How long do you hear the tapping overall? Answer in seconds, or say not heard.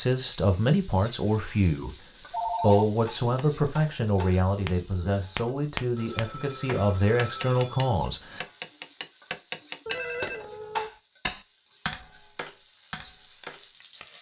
11 s.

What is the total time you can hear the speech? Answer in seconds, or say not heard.
8 s.